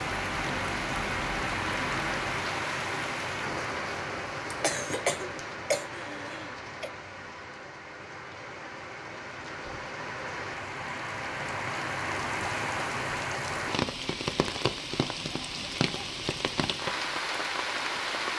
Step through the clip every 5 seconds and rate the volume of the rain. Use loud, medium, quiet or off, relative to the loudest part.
loud, medium, loud, loud.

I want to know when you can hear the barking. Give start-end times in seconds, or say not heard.
not heard.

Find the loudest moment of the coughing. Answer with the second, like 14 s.
5 s.